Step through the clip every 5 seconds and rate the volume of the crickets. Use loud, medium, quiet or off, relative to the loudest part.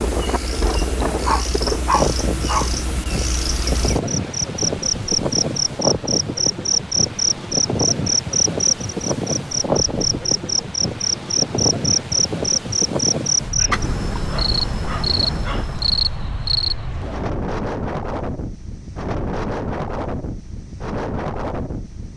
medium, loud, loud, loud, off.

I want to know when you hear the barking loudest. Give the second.
2 s.